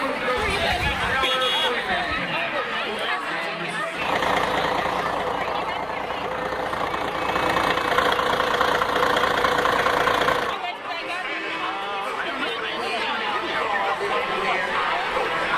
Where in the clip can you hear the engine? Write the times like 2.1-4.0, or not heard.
3.9-10.6.